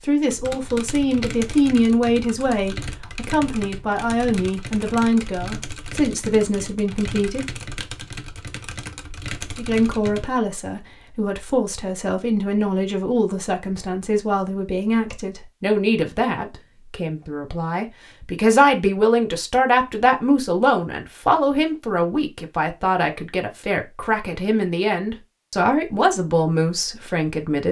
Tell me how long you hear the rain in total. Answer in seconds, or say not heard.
not heard.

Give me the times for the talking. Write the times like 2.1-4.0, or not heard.
0.1-7.5, 9.6-27.6.